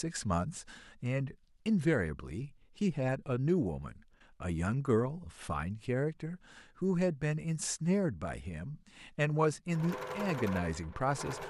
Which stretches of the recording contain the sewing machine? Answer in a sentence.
You can hear the sewing machine from 9.7 to 11.4 s.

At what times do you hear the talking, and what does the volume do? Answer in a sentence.
The talking can be heard from 0.0 to 11.4 s, at a steady volume.